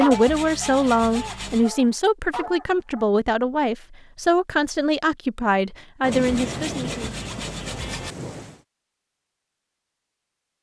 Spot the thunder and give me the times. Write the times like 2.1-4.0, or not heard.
6.0-8.6.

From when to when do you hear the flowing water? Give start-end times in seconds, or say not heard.
not heard.